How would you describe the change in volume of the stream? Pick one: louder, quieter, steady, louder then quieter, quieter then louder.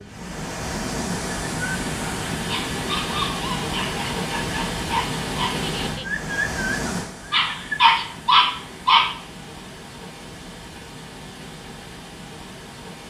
quieter.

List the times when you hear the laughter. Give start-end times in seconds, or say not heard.
5.5-6.1.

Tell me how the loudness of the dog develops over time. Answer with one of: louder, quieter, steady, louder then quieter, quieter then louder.
louder.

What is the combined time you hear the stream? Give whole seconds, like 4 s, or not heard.
13 s.